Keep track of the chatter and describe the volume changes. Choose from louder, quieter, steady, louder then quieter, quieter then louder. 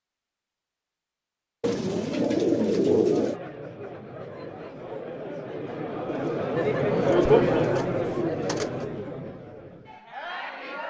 louder then quieter.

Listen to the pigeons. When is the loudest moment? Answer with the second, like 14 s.
3 s.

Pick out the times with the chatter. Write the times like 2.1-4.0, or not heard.
3.0-10.8.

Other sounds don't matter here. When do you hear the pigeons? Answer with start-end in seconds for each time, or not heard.
1.6-3.4, 6.0-8.8.